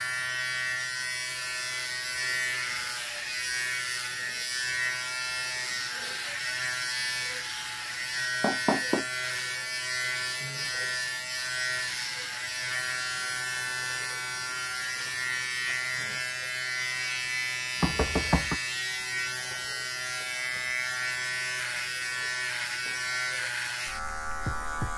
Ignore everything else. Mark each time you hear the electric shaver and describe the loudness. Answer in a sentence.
The electric shaver can be heard from 0.0 to 24.9 s, at a steady volume.